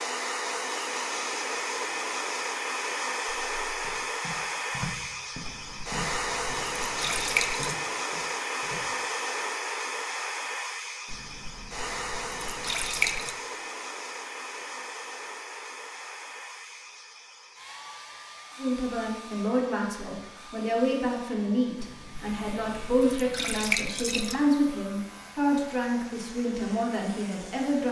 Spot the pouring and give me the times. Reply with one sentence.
The pouring can be heard from 5.4 to 7.8 s, from 11.1 to 13.3 s and from 21.8 to 24.4 s.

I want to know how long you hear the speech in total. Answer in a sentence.
The speech can be heard for 9 seconds in total.